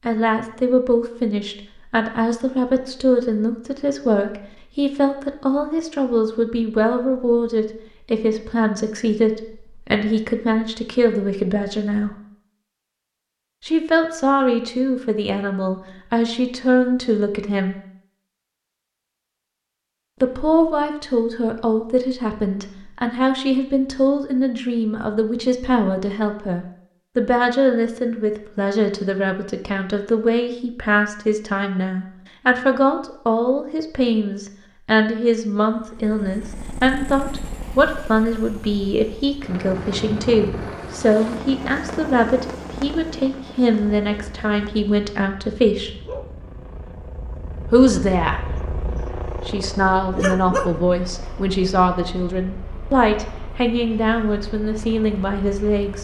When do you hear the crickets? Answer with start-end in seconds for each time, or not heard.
not heard.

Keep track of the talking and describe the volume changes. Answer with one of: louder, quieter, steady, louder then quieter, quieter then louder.
steady.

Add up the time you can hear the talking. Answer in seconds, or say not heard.
50 s.